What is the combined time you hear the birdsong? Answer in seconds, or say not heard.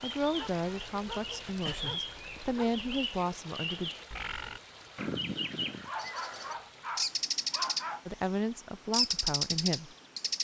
9 s.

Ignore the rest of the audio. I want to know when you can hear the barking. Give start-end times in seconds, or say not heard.
0.2-2.8, 5.8-8.1.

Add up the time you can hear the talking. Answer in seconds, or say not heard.
6 s.